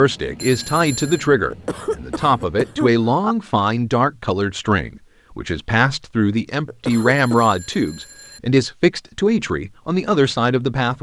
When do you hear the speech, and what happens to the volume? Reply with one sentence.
The speech can be heard from 0.0 to 10.9 s, at a steady volume.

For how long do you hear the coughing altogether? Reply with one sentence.
You can hear the coughing for 3 seconds altogether.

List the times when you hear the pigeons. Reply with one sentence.
You can't hear the pigeons here.